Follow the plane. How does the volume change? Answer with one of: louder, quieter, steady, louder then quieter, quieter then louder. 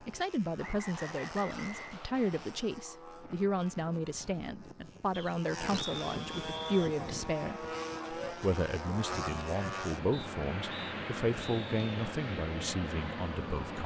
louder.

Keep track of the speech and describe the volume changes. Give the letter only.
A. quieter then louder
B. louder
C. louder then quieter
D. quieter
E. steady
E.